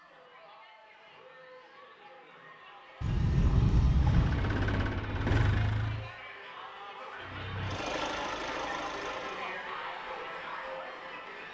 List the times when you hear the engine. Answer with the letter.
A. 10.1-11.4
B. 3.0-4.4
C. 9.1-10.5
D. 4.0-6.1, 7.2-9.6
D.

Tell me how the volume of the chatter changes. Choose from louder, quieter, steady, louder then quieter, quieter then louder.
louder.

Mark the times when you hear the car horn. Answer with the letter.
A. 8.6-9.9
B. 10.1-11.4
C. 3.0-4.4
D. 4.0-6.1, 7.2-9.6
C.